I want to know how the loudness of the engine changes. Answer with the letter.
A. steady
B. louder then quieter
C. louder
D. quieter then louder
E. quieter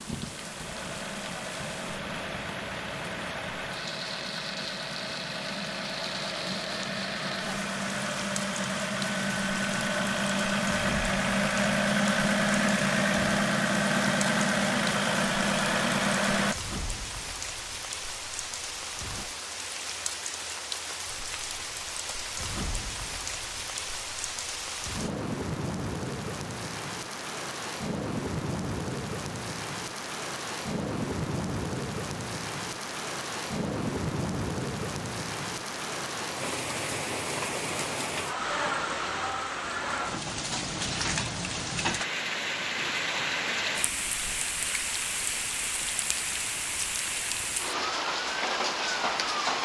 C.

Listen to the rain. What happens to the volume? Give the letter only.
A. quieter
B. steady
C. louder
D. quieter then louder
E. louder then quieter
C.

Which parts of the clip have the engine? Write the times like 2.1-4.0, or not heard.
0.1-16.6.